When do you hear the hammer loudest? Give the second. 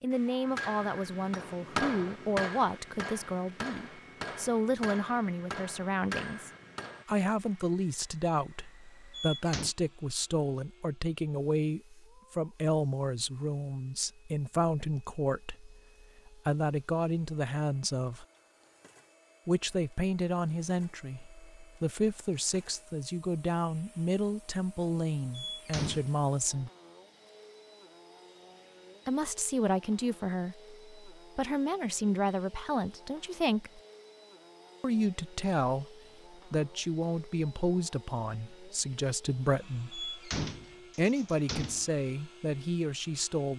2 s.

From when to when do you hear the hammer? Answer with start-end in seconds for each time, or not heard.
0.5-7.0.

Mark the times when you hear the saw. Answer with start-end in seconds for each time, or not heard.
not heard.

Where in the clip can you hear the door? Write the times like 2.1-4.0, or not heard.
9.1-9.8, 25.3-26.1, 39.9-41.9.